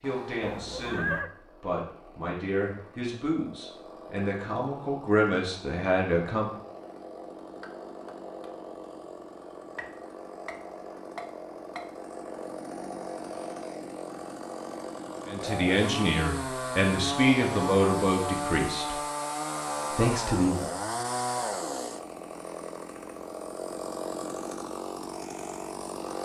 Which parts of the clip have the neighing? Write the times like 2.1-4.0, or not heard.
0.4-1.3.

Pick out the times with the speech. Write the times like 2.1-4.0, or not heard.
0.0-6.5, 15.2-19.0, 19.9-20.7.